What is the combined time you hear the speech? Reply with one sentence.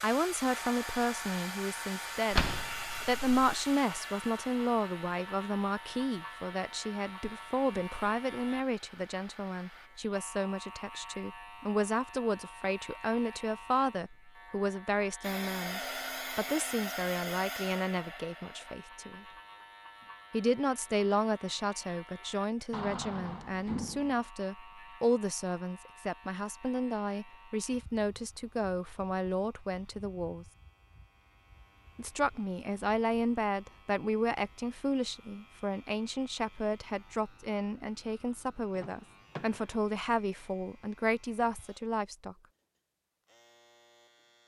You can hear the speech for 40 seconds altogether.